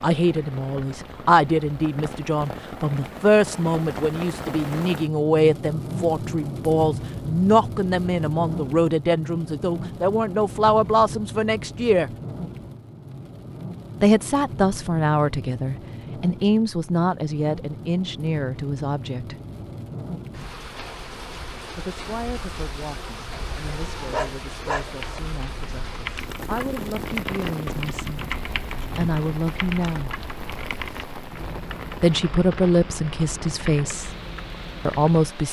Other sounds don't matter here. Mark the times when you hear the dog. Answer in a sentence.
The dog can be heard from 23.6 to 25.1 s.